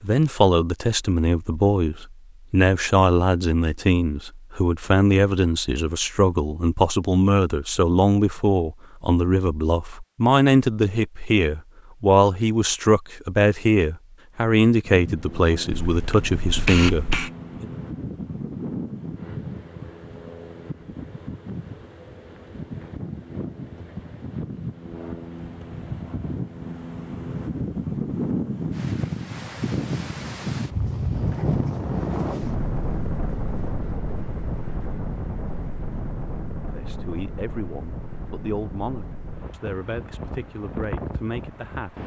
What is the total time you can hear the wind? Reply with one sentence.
You can hear the wind for 27 seconds altogether.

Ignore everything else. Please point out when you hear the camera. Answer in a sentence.
You can hear the camera from 15.7 to 17.3 s.